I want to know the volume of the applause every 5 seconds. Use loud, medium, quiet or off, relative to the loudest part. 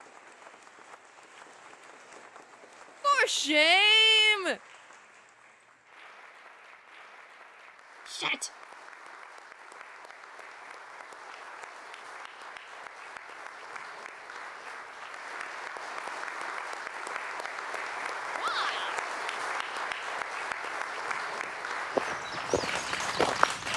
quiet, quiet, medium, loud, loud.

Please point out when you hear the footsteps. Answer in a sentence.
The footsteps can be heard from 21.3 to 23.7 s.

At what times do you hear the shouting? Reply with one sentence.
You can hear the shouting from 3.0 to 4.5 s, from 8.1 to 8.5 s and from 18.4 to 18.9 s.